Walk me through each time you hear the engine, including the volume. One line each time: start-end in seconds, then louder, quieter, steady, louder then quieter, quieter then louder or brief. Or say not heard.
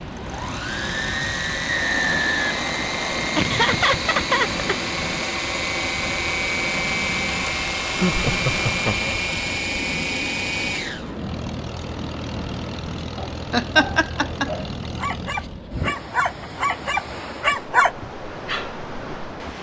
0.0-15.7 quieter.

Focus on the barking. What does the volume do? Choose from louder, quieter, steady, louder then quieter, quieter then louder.
louder.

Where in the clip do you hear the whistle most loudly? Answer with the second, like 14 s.
2 s.